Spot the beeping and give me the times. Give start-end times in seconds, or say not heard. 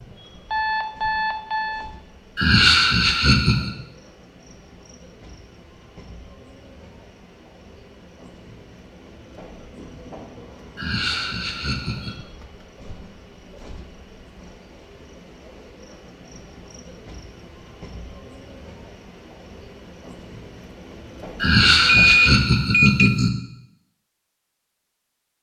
0.5-1.9, 21.9-23.1.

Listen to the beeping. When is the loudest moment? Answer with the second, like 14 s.
22 s.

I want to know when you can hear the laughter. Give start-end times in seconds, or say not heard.
2.4-3.8, 10.8-12.2, 21.4-23.3.